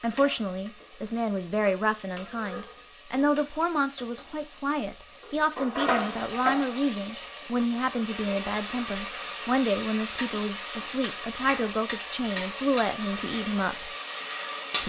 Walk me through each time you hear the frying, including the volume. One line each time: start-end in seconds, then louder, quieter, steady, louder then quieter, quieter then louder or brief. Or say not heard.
0.0-14.8 louder.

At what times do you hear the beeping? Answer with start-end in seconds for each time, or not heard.
not heard.